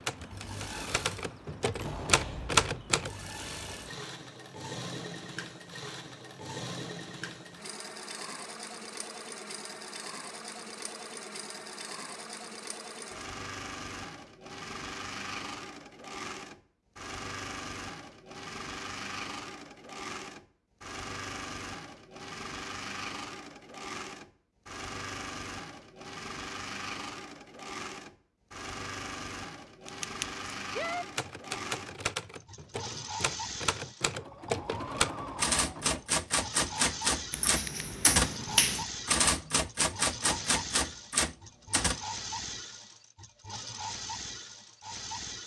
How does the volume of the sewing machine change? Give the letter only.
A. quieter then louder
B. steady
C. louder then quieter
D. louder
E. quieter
B.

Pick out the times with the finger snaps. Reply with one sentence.
You can hear the finger snaps from 37.3 to 38.9 s.